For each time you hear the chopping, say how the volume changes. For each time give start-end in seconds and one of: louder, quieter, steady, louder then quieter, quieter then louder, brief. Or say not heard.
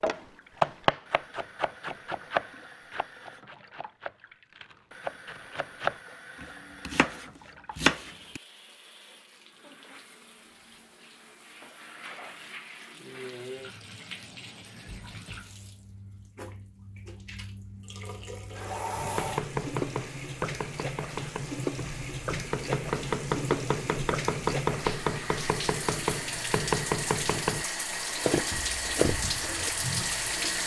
0.0-8.4 quieter then louder
18.9-29.7 louder.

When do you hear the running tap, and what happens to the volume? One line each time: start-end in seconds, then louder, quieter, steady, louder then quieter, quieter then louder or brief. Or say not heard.
0.2-30.6 louder.